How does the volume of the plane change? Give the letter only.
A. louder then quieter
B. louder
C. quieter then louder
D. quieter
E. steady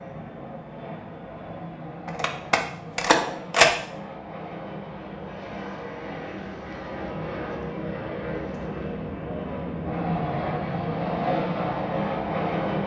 B.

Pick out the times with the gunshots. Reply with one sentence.
The gunshots can be heard from 2.0 to 3.6 s.